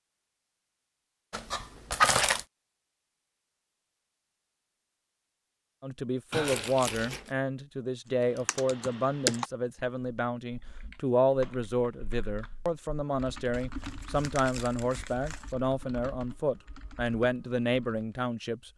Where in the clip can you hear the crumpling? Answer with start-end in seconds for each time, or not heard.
1.3-2.5, 6.3-7.3, 13.5-15.6.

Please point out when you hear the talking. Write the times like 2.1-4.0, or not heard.
5.8-18.7.